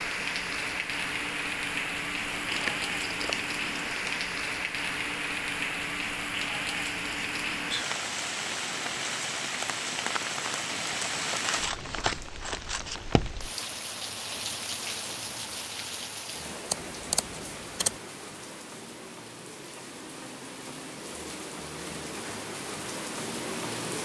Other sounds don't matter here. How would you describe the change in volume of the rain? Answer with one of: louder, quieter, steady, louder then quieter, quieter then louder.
quieter.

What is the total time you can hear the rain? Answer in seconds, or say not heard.
24 s.